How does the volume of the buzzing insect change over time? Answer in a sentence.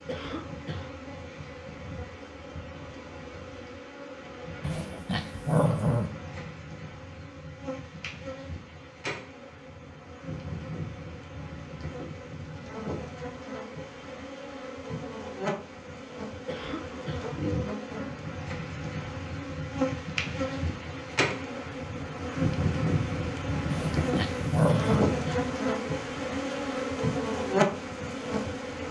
The volume of the buzzing insect goes up.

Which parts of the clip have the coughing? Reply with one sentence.
The coughing can be heard from 0.1 to 0.9 s, from 16.4 to 17.3 s and from 24.6 to 25.5 s.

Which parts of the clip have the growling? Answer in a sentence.
The growling can be heard from 4.6 to 6.1 s and from 23.7 to 25.1 s.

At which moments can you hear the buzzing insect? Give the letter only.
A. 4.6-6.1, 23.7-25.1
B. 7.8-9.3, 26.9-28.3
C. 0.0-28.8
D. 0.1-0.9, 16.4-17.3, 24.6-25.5
C.